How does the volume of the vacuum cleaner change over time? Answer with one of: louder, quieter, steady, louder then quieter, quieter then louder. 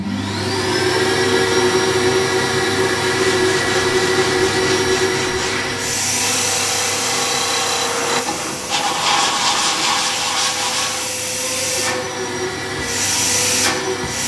quieter then louder.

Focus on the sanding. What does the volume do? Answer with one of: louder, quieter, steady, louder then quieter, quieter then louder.
louder.